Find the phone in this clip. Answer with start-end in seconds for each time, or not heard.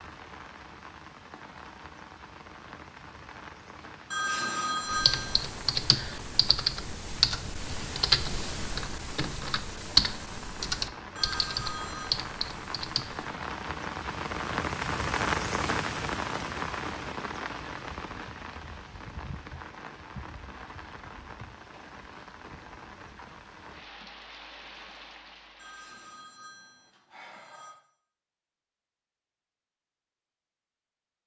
4.1-5.5, 11.2-12.2, 25.6-27.8.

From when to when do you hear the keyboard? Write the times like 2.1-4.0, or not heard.
4.8-13.3.